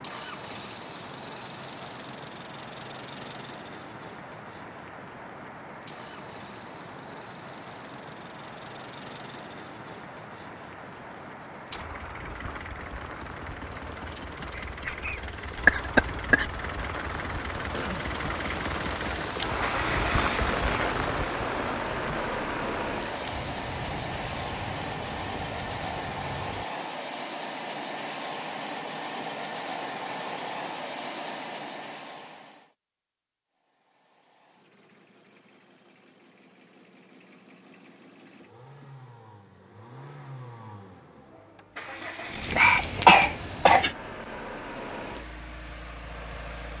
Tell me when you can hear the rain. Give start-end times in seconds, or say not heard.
0.0-26.6.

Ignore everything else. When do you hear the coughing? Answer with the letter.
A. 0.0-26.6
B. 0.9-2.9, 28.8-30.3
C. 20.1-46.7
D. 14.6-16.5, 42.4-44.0
D.